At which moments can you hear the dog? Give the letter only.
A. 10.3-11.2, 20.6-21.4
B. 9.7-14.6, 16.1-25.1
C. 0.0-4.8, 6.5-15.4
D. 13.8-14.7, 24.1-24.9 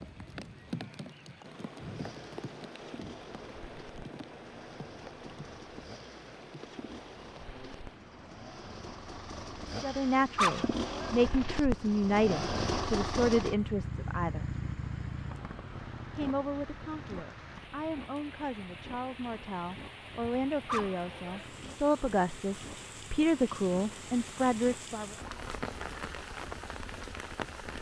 A.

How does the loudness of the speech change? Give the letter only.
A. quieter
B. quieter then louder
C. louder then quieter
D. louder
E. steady
B.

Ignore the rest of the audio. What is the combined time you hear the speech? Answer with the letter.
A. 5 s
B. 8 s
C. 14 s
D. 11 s
C.